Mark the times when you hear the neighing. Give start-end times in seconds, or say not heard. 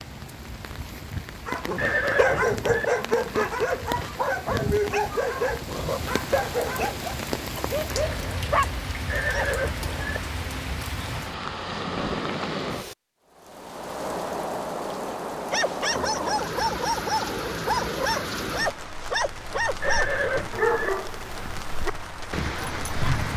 1.8-2.9, 9.1-10.2, 19.8-20.9.